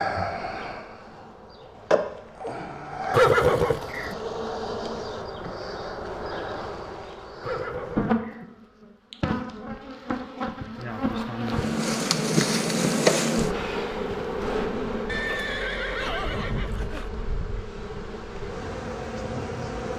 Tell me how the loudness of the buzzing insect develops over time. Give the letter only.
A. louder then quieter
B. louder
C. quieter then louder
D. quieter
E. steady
A.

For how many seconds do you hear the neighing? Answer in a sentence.
The neighing can be heard for 4 seconds in total.